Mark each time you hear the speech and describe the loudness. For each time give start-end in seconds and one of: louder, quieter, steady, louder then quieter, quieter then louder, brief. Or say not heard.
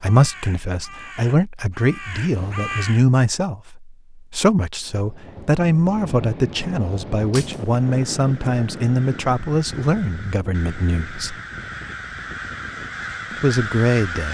0.0-11.3 steady
13.3-14.2 brief.